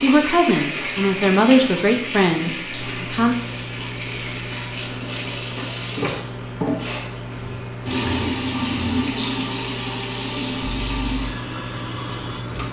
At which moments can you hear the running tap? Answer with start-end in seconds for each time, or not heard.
0.0-12.6.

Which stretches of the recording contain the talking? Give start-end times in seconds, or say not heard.
0.0-3.4.